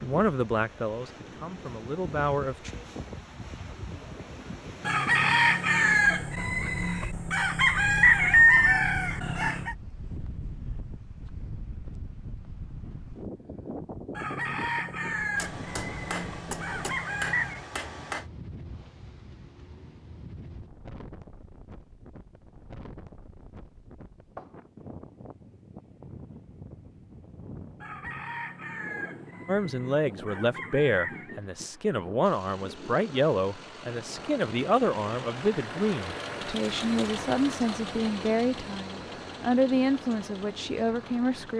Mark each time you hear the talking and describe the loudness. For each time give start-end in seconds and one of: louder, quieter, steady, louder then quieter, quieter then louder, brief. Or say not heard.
0.0-2.7 brief
29.4-41.5 steady.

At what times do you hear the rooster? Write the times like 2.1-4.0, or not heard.
4.8-9.8, 14.2-17.6, 27.8-31.4.